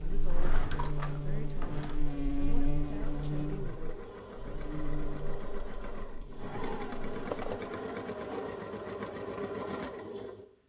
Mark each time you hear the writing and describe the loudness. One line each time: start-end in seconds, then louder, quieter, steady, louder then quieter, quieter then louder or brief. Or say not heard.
not heard.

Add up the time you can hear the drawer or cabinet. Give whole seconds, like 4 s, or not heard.
3 s.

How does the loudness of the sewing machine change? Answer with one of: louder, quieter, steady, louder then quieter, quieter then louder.
louder.